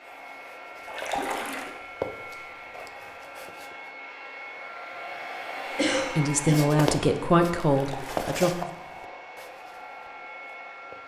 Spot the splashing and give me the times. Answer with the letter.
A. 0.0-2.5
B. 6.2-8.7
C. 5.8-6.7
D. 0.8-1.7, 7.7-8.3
D.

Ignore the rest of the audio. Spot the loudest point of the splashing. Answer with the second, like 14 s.
1 s.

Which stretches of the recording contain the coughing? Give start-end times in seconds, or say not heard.
5.8-6.7.